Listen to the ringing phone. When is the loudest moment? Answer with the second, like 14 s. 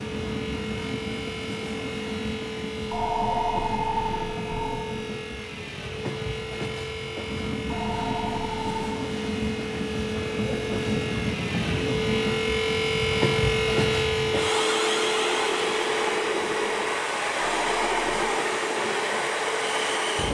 3 s.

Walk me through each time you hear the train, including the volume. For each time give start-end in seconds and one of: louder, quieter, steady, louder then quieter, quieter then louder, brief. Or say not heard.
0.0-20.2 louder.